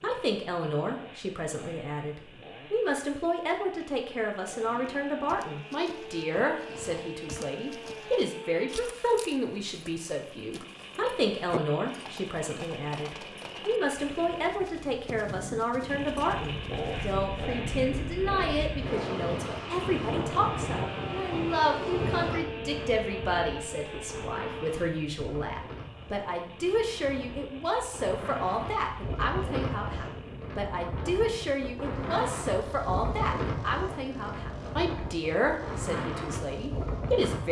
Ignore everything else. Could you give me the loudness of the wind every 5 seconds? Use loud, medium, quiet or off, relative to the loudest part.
off, off, off, loud, loud, loud, loud, loud.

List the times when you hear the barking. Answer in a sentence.
The barking can't be heard in this clip.